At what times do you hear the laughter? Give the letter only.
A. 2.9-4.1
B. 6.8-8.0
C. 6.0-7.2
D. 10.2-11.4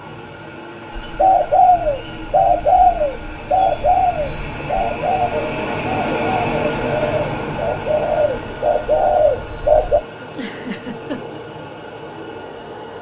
D.